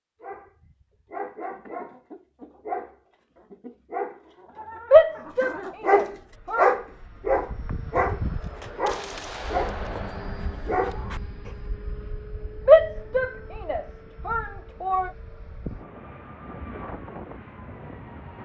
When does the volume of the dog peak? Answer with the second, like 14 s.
7 s.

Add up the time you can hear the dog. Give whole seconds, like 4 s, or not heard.
11 s.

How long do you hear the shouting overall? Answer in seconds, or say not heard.
4 s.